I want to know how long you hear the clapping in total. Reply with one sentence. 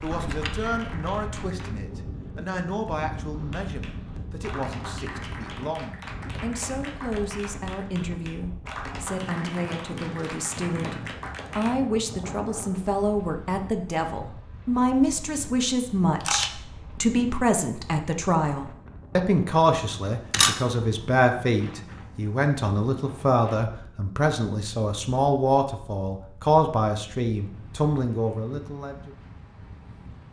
You can hear the clapping for 10 seconds altogether.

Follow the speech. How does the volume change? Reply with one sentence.
The loudness of the speech goes up.